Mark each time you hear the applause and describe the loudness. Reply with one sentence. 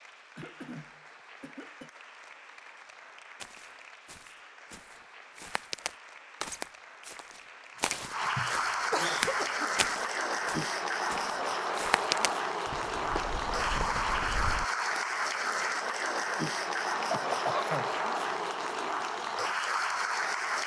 You can hear the applause from 0.0 to 20.6 s, getting louder.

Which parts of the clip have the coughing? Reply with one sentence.
The coughing can be heard from 0.3 to 1.9 s, from 8.0 to 9.7 s and from 17.1 to 17.9 s.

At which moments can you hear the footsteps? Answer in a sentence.
You can hear the footsteps from 3.4 to 15.0 s.